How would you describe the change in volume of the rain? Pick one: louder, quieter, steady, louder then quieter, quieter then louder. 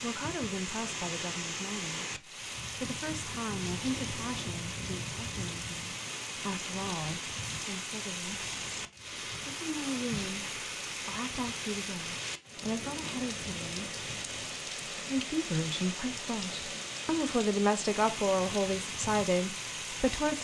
steady.